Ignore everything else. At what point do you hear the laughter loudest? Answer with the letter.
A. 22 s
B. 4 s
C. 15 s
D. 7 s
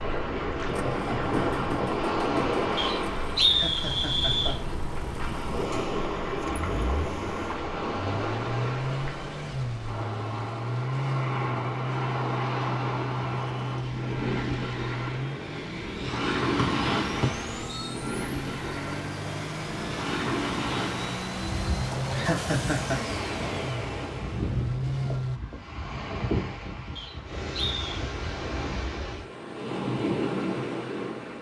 A.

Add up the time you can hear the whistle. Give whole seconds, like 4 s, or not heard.
4 s.